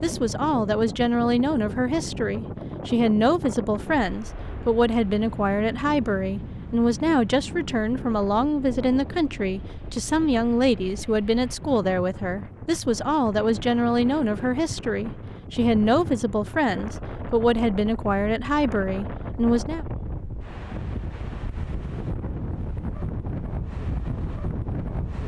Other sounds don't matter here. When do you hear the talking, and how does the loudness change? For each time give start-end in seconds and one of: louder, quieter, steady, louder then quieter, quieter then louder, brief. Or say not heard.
0.0-19.9 steady.